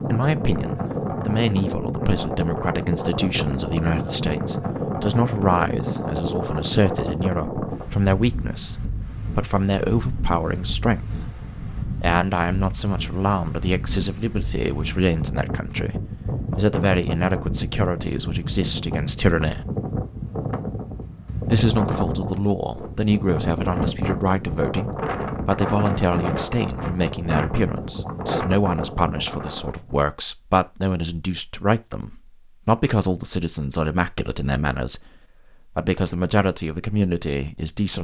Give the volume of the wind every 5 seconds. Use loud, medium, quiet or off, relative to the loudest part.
loud, loud, medium, loud, loud, loud, off, off.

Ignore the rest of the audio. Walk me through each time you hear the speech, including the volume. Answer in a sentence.
You can hear the speech from 0.1 to 19.6 s, at a steady volume; from 21.4 to 35.1 s, at a steady volume; and briefly from 35.7 to 37.9 s.